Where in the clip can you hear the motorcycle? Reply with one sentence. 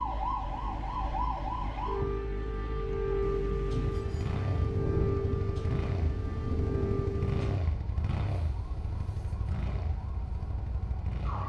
The motorcycle can be heard from 0.0 to 11.4 s.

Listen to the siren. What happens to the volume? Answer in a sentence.
The volume of the siren goes down.